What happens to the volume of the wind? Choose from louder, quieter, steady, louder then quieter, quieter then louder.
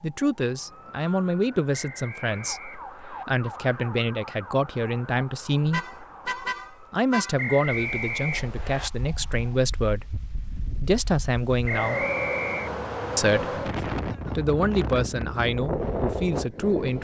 louder.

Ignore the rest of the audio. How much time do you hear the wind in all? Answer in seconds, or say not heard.
9 s.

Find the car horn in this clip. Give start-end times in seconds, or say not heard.
5.7-7.3.